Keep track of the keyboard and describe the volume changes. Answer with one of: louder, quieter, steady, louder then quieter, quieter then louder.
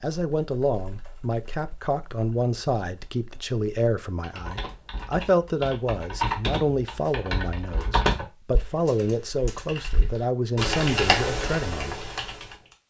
louder.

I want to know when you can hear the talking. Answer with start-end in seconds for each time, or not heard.
0.0-12.1.